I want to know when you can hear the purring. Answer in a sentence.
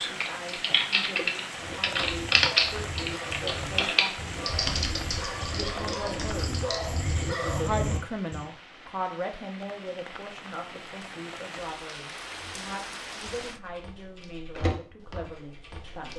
The purring can't be heard in this clip.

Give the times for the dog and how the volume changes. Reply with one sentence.
The dog can be heard from 1.4 to 8.4 s, getting louder.